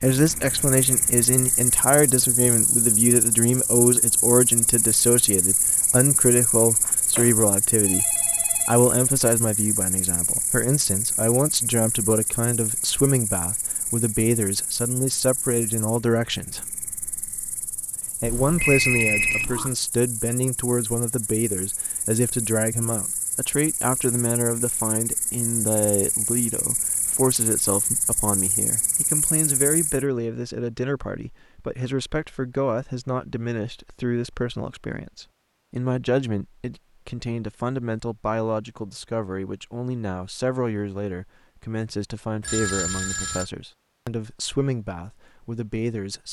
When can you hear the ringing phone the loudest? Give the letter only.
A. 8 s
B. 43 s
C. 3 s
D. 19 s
D.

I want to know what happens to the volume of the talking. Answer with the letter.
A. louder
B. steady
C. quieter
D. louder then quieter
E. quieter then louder
C.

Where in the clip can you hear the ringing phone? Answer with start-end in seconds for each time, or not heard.
6.8-8.8, 18.2-19.8, 42.4-43.5.